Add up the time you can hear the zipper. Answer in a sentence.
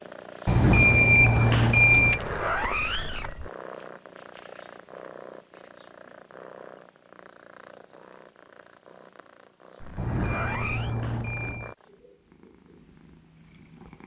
The zipper can be heard for 3 seconds in total.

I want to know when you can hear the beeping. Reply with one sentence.
You can hear the beeping from 0.5 to 2.2 s and from 9.9 to 11.8 s.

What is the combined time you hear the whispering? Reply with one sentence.
You can't hear the whispering here.